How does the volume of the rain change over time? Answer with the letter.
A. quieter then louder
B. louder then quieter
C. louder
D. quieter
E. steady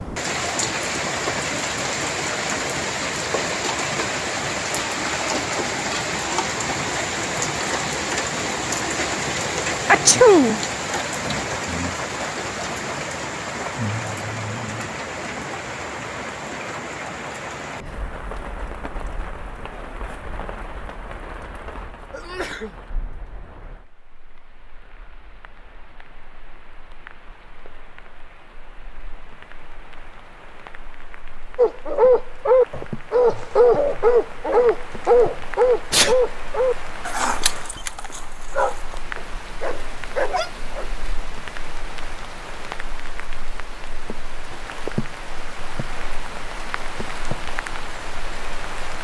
A.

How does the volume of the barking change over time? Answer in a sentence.
The loudness of the barking goes down.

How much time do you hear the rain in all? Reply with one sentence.
You can hear the rain for 49 seconds altogether.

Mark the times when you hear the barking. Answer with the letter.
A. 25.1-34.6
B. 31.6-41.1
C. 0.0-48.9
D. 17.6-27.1
B.